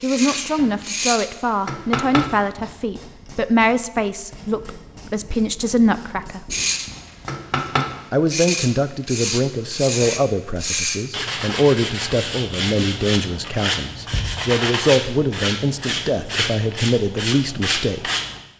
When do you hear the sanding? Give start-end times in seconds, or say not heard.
0.0-2.3, 6.5-18.4.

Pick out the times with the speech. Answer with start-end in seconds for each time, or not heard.
0.0-6.5, 8.1-18.1.